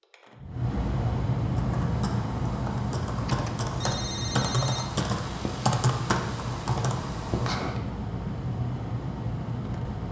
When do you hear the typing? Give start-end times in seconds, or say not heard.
1.5-7.8.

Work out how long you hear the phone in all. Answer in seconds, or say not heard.
2 s.